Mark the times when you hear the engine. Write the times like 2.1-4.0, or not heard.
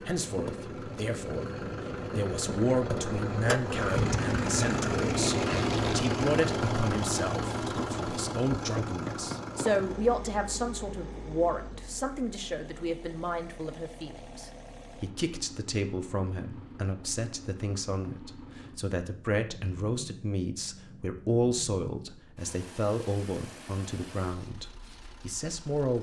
0.0-25.9.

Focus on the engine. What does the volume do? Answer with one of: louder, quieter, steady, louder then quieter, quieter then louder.
quieter.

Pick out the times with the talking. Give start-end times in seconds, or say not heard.
0.0-25.9.